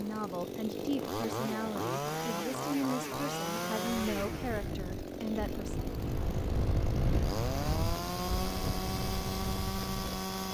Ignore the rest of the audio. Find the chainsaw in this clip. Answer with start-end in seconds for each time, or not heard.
0.0-10.5.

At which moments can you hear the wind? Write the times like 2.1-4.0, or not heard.
0.0-10.5.